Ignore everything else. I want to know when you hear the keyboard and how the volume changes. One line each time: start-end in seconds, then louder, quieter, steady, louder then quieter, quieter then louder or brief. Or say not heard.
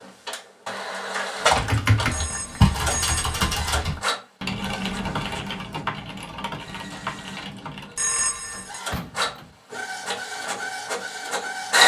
1.4-8.1 quieter.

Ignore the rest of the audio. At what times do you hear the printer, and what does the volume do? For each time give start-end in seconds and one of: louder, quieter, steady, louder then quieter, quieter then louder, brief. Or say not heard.
0.0-11.8 quieter then louder.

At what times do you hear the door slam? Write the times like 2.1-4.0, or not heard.
8.9-9.6.